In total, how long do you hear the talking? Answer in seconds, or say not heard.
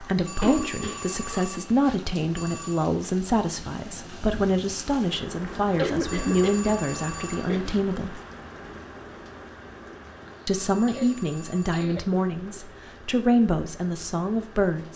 13 s.